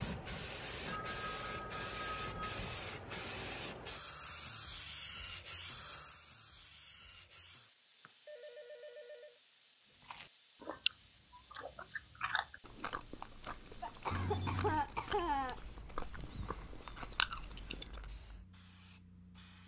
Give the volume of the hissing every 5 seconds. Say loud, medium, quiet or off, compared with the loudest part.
loud, medium, quiet, quiet.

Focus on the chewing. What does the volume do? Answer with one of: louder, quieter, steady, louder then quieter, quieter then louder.
quieter then louder.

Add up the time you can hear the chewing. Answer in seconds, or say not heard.
8 s.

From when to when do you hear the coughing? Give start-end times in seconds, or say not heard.
13.8-15.6.